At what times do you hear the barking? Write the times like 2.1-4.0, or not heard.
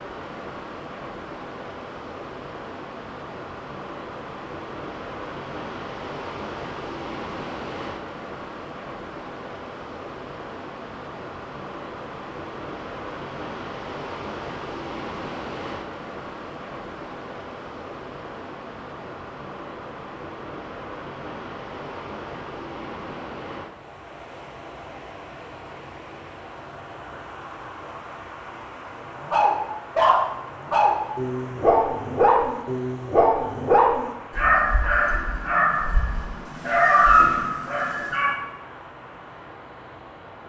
29.2-38.4.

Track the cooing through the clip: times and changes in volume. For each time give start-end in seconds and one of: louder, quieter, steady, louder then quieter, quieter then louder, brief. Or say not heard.
not heard.